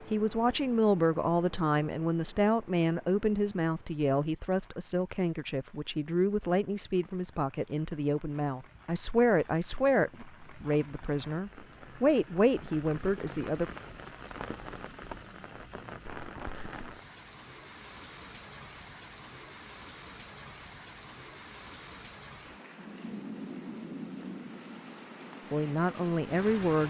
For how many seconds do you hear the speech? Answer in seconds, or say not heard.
15 s.